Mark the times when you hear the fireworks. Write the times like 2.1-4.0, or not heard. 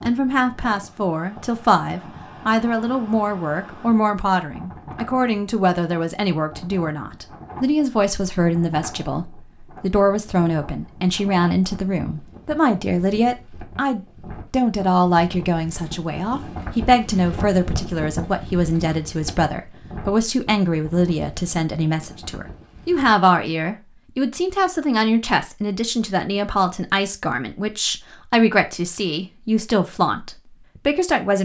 not heard.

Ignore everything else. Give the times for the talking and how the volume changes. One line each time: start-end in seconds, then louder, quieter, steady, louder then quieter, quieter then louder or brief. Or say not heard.
0.1-31.4 steady.